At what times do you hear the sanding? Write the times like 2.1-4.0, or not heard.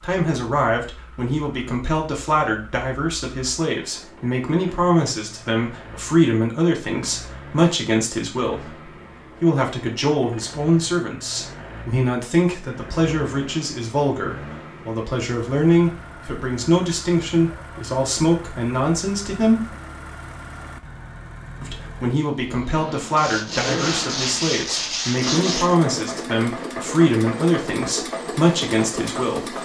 23.1-25.8.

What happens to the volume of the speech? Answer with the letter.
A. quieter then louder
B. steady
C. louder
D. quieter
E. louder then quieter
B.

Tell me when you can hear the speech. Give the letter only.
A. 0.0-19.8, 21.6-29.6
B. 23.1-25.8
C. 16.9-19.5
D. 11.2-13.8
A.